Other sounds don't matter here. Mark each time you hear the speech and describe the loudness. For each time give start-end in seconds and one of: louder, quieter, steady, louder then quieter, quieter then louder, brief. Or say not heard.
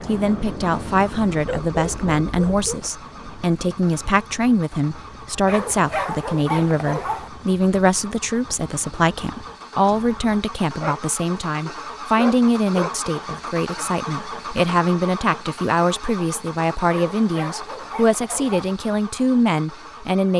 0.1-20.3 steady.